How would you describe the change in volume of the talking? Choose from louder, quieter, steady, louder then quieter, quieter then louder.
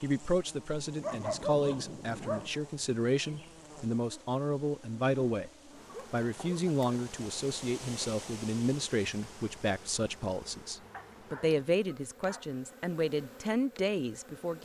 steady.